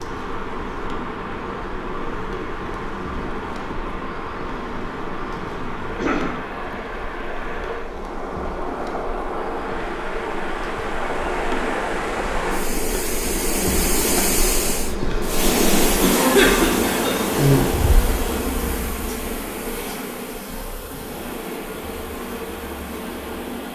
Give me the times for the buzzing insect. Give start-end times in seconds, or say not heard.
0.0-23.7.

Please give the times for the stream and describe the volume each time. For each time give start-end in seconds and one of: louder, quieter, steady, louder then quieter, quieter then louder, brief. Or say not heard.
0.0-23.7 louder then quieter.